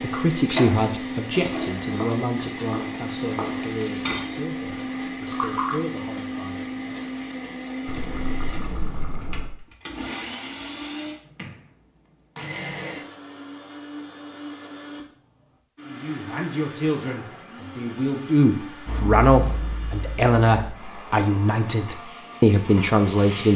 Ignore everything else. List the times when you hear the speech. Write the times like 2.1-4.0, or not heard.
0.0-7.0, 15.8-23.5.